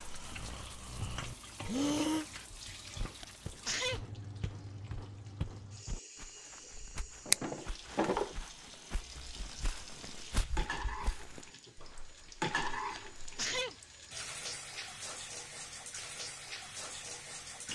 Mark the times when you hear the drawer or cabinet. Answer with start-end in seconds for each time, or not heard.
7.0-8.3.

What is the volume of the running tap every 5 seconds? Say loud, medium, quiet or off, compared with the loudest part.
medium, medium, loud, loud.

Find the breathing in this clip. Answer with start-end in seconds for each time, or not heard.
0.0-2.2.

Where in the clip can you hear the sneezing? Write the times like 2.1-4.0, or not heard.
3.2-4.0, 12.9-13.8.